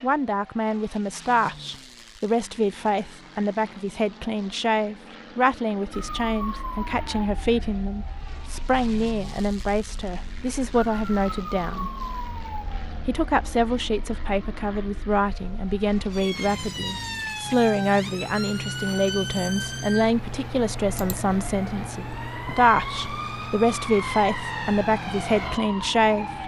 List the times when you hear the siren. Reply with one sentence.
You can hear the siren from 5.9 to 26.4 s.